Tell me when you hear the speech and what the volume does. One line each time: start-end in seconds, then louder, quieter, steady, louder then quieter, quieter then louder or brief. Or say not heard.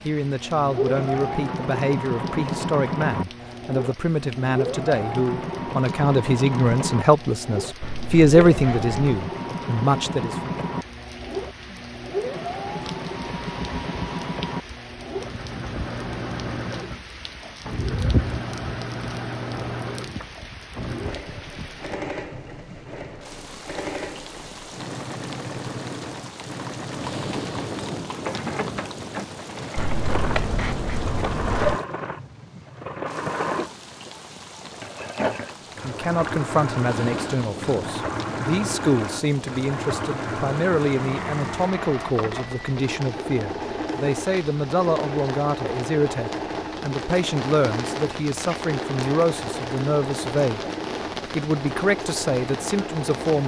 0.1-10.6 louder
35.8-50.6 steady
51.4-53.4 brief.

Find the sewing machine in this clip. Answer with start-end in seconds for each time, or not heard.
0.2-53.4.